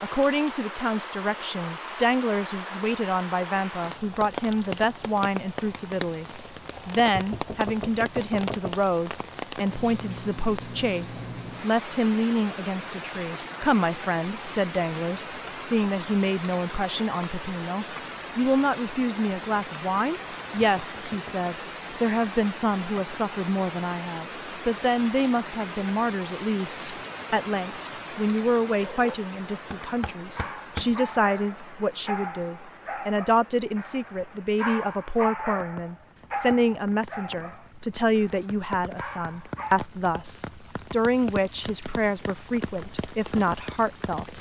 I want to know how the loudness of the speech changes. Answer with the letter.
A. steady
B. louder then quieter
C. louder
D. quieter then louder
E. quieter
A.